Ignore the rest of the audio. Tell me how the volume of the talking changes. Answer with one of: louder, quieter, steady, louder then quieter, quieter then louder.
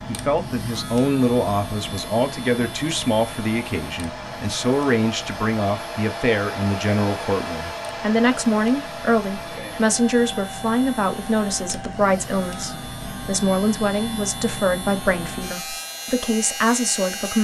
steady.